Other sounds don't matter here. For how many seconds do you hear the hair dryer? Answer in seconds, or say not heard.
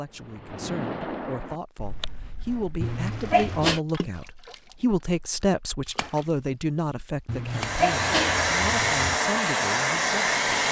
3 s.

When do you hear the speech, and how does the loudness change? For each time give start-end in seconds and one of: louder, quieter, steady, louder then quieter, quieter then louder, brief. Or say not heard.
0.0-10.6 louder then quieter.